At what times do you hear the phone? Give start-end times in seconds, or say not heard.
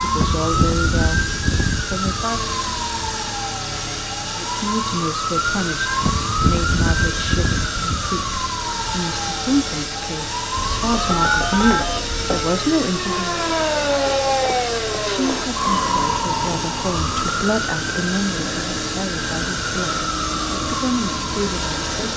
10.6-12.5.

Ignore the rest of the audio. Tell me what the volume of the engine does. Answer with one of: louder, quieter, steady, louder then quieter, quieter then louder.
steady.